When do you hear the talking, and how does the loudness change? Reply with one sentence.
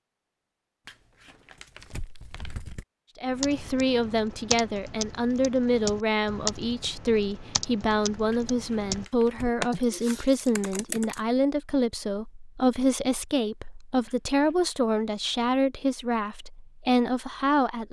The talking can be heard from 3.1 to 17.8 s, at a steady volume.